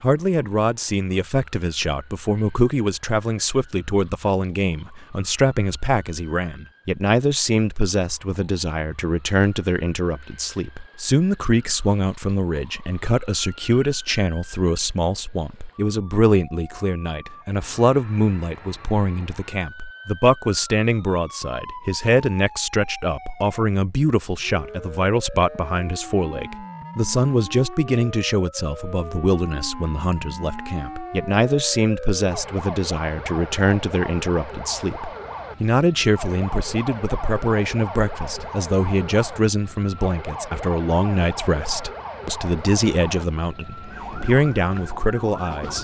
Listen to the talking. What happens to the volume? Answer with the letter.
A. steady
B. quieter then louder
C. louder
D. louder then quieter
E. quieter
A.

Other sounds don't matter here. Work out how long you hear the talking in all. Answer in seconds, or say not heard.
46 s.